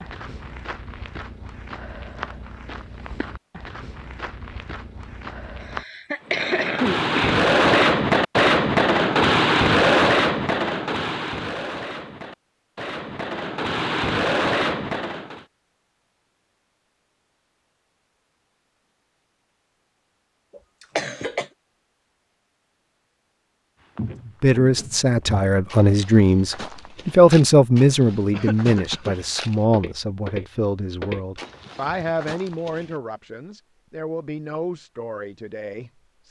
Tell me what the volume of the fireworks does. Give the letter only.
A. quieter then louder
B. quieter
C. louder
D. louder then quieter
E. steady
A.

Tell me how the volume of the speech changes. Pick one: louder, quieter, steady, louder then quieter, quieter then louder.
quieter.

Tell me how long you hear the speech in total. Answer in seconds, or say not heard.
12 s.